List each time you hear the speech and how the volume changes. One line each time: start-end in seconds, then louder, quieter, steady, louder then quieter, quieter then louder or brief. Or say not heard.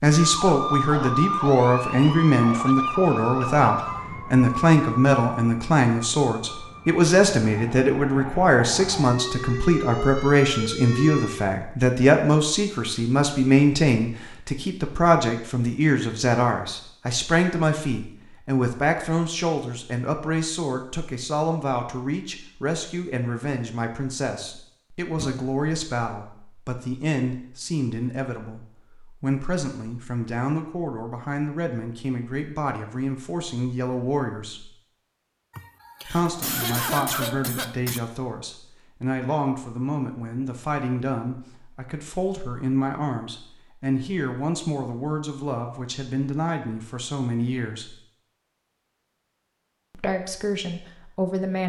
0.0-34.7 quieter
36.0-48.0 steady
49.9-51.6 brief.